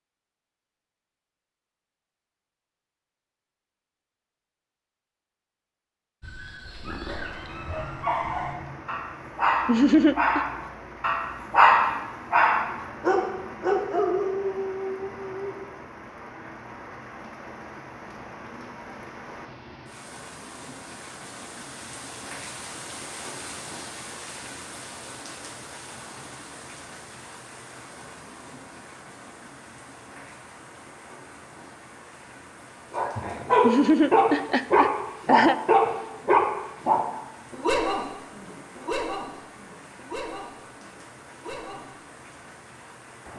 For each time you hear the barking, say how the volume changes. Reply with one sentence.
You can hear the barking from 6.2 to 15.6 s, getting louder then quieter; and from 32.9 to 41.9 s, getting quieter.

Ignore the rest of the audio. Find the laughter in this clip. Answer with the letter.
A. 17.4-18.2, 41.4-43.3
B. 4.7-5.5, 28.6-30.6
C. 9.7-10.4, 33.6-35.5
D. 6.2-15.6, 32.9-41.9
C.